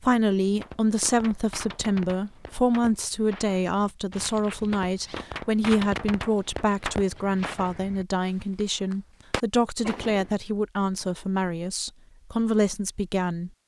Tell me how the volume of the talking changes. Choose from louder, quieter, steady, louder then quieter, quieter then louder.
steady.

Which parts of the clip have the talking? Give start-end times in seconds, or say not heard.
0.0-13.5.